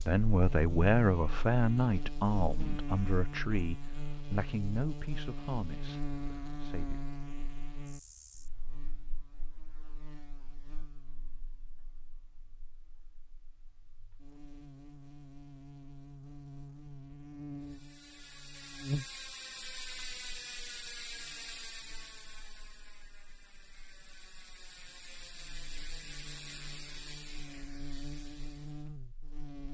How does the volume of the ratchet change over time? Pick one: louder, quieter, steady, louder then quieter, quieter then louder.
quieter then louder.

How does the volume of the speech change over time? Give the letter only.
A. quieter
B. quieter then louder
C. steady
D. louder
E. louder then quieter
A.